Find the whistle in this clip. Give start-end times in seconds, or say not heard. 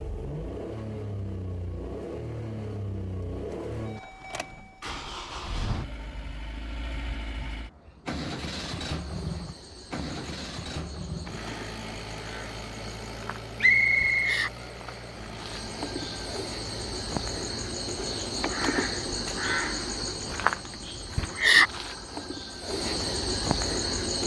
13.6-14.4.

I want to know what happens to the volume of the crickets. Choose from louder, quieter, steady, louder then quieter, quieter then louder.
louder.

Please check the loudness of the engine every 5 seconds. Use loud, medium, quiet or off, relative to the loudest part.
loud, loud, loud, medium, medium.